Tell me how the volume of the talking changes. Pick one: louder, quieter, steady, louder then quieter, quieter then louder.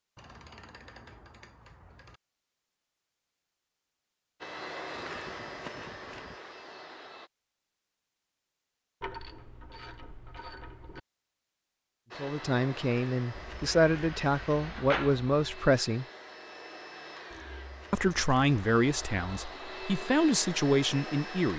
steady.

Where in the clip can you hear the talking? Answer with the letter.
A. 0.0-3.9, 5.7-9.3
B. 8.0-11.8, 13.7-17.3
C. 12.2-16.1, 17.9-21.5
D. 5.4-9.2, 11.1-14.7
C.